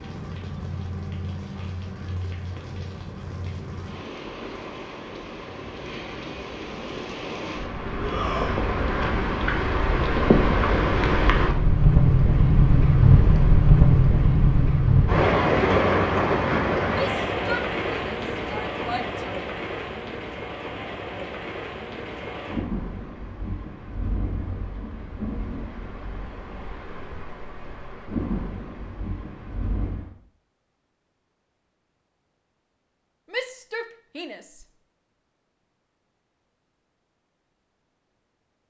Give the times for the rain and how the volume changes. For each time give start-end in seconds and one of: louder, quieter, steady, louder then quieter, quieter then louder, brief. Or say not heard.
0.0-30.1 louder then quieter.